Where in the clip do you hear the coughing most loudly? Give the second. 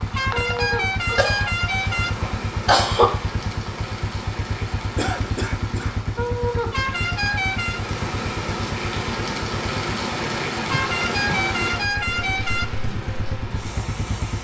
3 s.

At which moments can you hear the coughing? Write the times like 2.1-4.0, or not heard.
1.1-3.1, 5.0-6.0, 10.7-11.5.